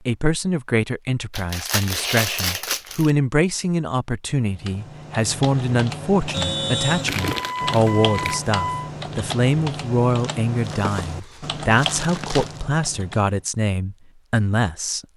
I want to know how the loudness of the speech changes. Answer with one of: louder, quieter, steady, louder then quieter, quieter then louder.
steady.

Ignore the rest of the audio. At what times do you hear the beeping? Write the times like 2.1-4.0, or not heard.
6.3-8.9.